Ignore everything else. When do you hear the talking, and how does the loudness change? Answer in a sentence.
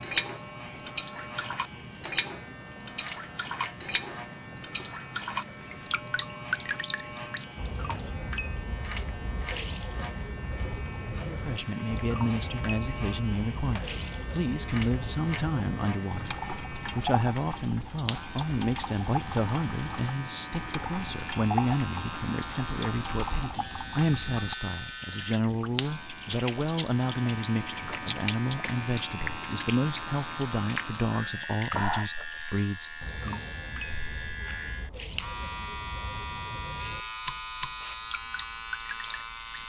You can hear the talking from 11.2 to 33.4 s, at a steady volume.